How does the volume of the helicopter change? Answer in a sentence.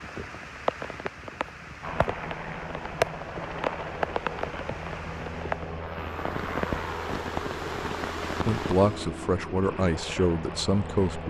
The volume of the helicopter stays about the same.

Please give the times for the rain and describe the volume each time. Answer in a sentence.
The rain can be heard from 0.0 to 9.1 s, at a steady volume.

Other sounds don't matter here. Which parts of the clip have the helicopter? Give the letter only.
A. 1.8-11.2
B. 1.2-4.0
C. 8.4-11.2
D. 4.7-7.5
A.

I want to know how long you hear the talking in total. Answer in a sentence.
The talking can be heard for 3 seconds in total.